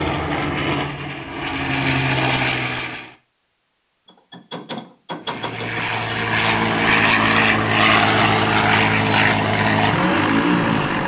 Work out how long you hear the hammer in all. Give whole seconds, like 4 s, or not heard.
2 s.